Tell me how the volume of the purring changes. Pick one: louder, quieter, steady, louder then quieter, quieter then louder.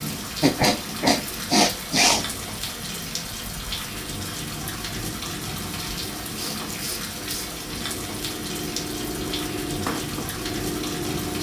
louder.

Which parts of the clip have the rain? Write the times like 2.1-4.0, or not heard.
0.0-11.3.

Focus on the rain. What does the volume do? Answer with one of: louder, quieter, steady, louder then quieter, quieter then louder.
steady.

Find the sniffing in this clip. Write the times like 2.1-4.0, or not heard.
0.4-2.2, 6.3-7.5.